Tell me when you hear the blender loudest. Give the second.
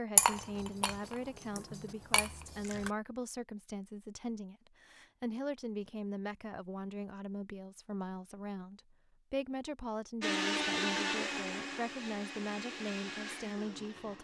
11 s.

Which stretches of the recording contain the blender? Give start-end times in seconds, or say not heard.
10.2-14.1.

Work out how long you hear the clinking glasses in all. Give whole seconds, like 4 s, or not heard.
3 s.